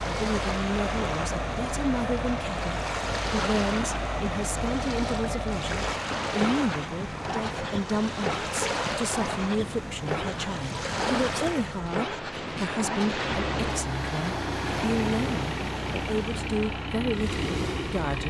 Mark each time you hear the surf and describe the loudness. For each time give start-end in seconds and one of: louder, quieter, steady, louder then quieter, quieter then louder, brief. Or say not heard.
0.0-18.2 steady.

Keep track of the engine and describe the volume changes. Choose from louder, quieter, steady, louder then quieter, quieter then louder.
steady.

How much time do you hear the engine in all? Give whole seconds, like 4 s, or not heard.
18 s.